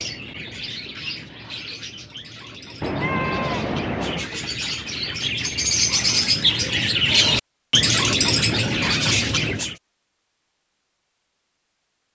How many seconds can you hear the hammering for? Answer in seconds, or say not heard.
not heard.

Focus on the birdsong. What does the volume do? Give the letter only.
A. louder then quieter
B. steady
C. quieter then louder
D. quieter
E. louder
E.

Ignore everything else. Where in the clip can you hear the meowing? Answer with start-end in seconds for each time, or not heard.
2.8-4.3.